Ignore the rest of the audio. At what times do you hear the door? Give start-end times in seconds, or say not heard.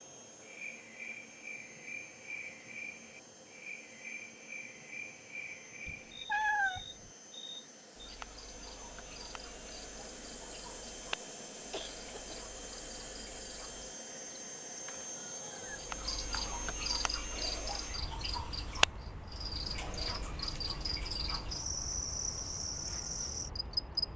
not heard.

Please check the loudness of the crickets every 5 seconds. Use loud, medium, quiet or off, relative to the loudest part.
medium, medium, quiet, loud, loud.